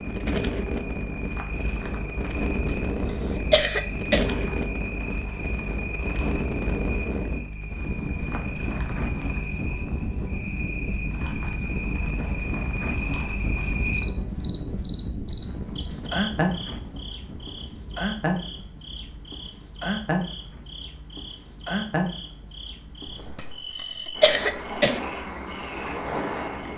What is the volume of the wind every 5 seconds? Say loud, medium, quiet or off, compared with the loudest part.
loud, loud, loud, medium, quiet, off.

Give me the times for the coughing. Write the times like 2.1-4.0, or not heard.
2.6-4.3, 23.4-25.0.